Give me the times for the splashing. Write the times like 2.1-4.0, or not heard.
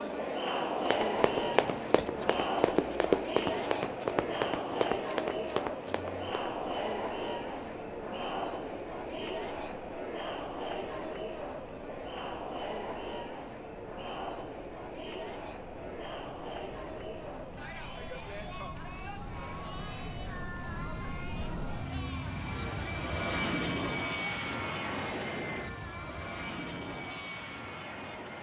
not heard.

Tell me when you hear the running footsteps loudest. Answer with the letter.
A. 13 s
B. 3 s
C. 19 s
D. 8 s
B.